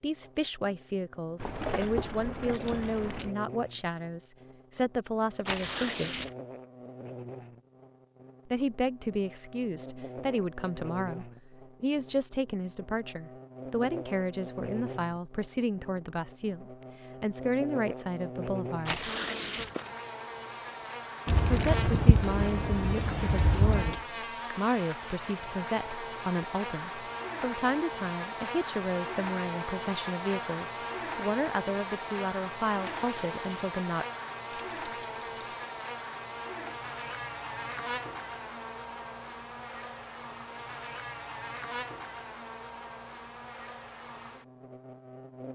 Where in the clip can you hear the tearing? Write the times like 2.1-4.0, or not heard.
5.5-6.3, 18.9-19.8, 32.8-33.5.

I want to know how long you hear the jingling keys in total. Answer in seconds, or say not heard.
6 s.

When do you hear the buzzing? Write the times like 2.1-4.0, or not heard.
0.0-45.5.